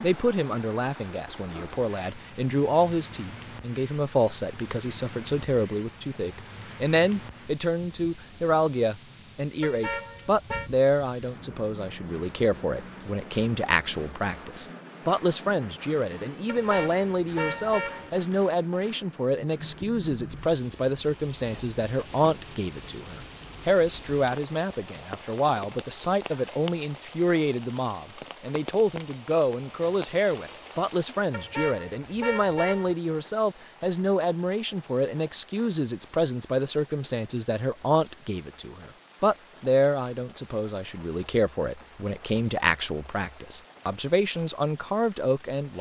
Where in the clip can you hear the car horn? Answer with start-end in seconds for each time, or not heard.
9.6-10.7, 16.4-18.1, 31.3-33.0.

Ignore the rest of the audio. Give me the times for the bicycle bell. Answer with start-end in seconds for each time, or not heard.
not heard.